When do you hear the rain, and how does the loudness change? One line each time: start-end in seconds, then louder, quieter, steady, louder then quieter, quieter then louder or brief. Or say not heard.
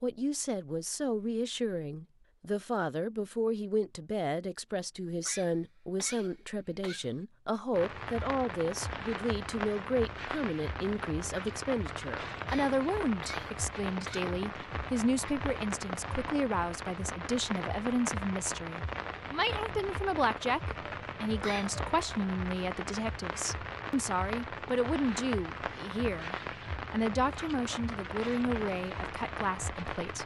7.7-30.2 steady.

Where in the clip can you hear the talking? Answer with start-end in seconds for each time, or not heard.
0.0-30.2.